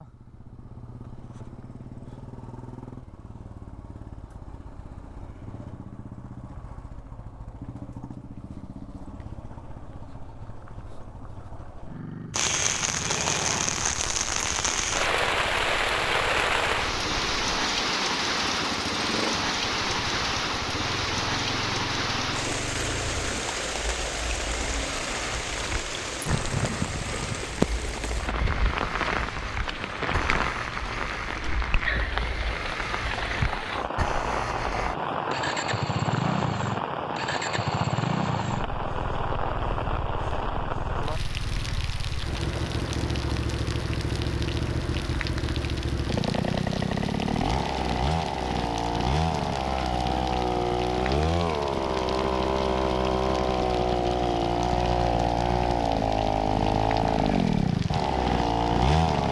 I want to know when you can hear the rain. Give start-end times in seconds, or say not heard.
12.3-59.2.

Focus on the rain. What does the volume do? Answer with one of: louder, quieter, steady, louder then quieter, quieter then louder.
quieter.